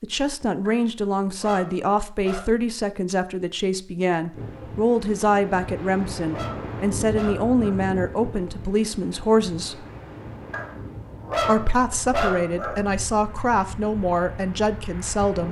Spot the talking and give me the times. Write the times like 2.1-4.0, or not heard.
0.0-9.8, 11.4-15.4.